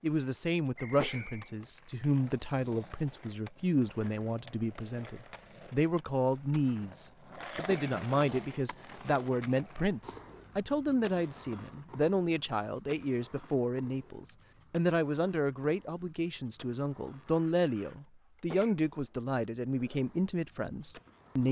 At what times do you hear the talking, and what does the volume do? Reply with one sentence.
The talking can be heard from 0.0 to 21.4 s, at a steady volume.